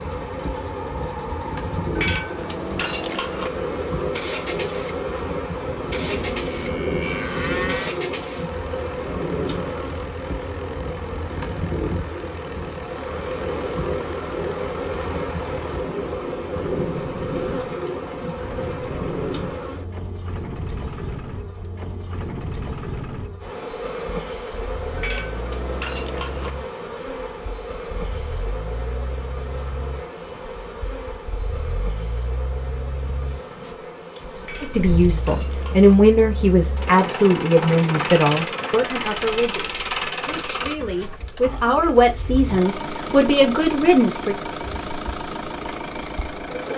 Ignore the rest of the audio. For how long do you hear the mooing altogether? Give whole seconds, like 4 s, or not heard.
2 s.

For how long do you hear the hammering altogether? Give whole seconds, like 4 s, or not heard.
5 s.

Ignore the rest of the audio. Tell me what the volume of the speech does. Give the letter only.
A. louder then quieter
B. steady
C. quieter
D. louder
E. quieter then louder
E.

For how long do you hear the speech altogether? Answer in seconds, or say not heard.
10 s.